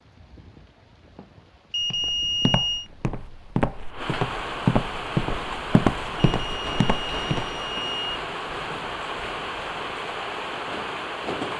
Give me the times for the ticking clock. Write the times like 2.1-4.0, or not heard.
not heard.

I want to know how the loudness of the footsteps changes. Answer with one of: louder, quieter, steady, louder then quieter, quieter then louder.
louder then quieter.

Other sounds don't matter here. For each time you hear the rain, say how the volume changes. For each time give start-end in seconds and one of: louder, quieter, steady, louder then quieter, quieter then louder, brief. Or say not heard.
0.0-11.5 louder.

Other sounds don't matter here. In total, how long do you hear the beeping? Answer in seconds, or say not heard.
3 s.